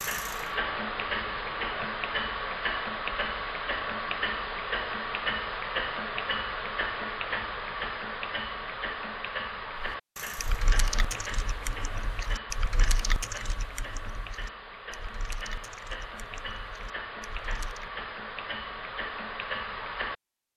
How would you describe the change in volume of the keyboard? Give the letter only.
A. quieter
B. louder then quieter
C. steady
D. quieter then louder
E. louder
A.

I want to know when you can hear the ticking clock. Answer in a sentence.
You can hear the ticking clock from 0.0 to 20.5 s.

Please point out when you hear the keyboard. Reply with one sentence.
The keyboard can be heard from 9.8 to 17.9 s.